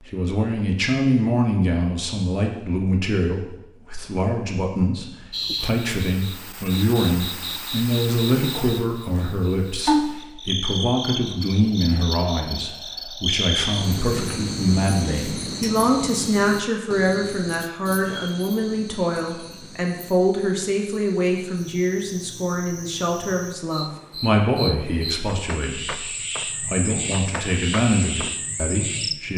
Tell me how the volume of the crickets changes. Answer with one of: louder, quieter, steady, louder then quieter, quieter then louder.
quieter then louder.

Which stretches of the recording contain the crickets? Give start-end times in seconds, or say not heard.
5.3-29.3.